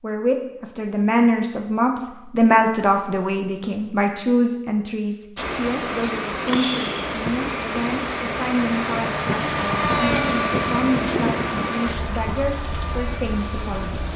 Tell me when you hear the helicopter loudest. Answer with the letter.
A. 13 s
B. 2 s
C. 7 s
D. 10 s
D.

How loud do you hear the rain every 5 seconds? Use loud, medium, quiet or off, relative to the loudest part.
off, loud, loud.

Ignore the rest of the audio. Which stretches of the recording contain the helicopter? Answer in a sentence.
You can hear the helicopter from 5.7 to 14.1 s.